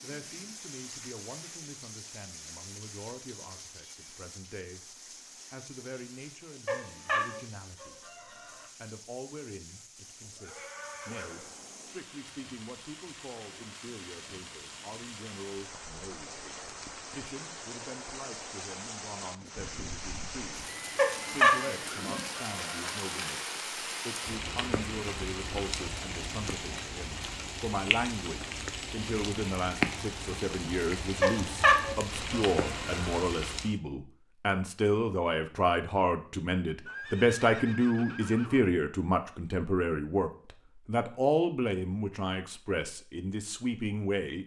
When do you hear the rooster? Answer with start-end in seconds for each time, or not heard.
6.7-8.7, 20.9-22.9, 31.2-33.2.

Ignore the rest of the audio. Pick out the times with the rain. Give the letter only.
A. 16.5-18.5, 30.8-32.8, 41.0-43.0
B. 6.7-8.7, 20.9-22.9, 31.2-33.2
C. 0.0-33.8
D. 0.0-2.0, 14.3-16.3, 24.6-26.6
C.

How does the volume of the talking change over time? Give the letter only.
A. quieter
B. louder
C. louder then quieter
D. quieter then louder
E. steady
B.